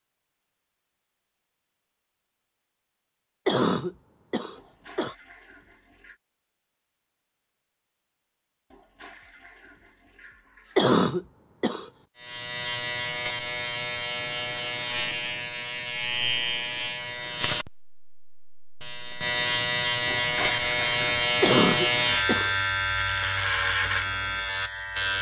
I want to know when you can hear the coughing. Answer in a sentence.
The coughing can be heard from 3.5 to 5.2 s, from 10.8 to 11.9 s and from 21.4 to 22.6 s.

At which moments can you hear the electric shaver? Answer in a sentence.
You can hear the electric shaver from 12.2 to 25.1 s.